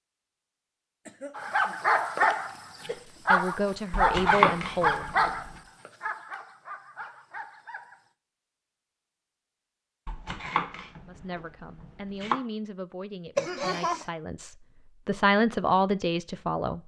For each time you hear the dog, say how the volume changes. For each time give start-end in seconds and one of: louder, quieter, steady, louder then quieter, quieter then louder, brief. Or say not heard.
1.4-8.0 quieter.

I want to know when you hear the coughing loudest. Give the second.
14 s.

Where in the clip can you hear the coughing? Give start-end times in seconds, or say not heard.
1.1-3.2, 13.3-14.1.